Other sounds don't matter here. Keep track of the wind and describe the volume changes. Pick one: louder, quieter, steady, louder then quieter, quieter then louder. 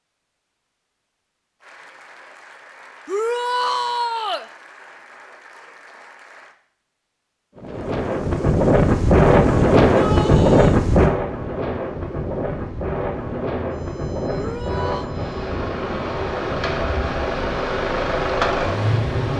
quieter.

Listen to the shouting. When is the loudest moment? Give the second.
4 s.